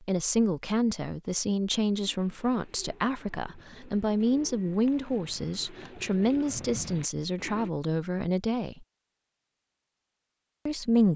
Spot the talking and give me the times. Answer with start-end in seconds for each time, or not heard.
0.1-8.8, 10.7-11.1.